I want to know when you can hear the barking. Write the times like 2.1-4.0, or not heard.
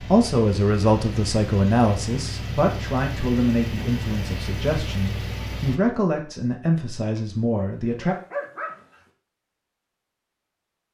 7.2-9.0.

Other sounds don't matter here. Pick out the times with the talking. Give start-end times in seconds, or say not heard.
0.1-8.2.